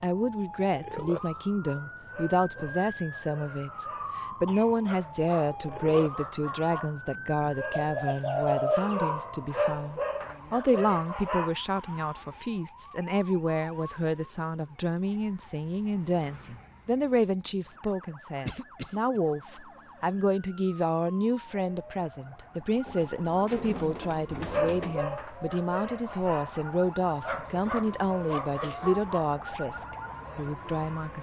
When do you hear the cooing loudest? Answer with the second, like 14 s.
9 s.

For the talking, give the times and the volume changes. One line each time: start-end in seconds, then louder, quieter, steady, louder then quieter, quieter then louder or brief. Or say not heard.
0.0-31.1 steady.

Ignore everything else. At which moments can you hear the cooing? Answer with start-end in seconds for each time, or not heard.
7.7-9.1, 22.9-25.1.